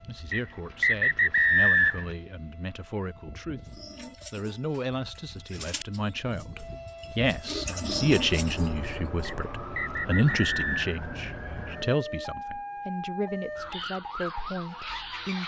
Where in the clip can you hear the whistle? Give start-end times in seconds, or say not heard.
0.3-2.0, 9.2-10.9.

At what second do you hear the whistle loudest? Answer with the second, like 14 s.
2 s.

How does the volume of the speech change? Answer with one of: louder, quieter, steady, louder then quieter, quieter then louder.
louder then quieter.